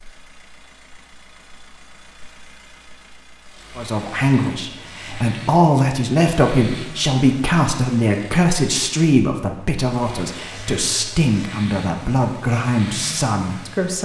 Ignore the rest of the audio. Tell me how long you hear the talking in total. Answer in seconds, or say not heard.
10 s.